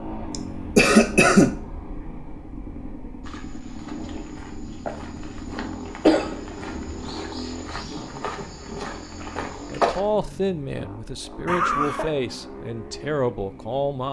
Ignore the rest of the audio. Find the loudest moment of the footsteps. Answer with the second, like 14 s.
10 s.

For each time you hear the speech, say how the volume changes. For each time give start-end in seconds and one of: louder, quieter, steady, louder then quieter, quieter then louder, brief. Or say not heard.
9.2-14.0 steady.